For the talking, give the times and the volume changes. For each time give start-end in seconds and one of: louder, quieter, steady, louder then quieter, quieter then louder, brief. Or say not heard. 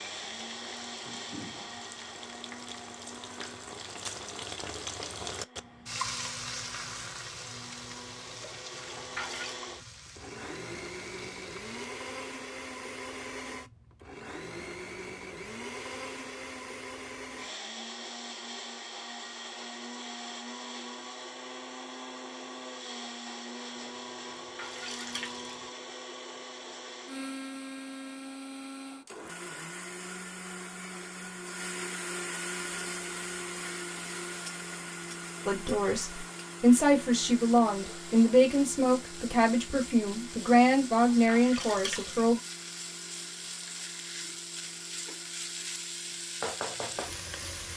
35.5-42.4 steady.